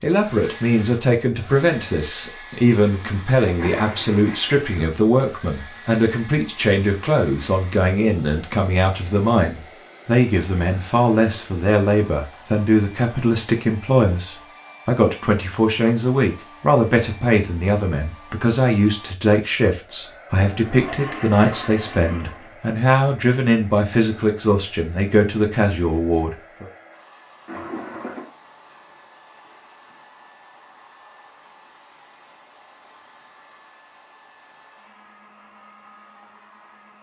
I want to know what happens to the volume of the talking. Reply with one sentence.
The loudness of the talking stays about the same.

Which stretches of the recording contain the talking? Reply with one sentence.
The talking can be heard from 0.0 to 26.7 s.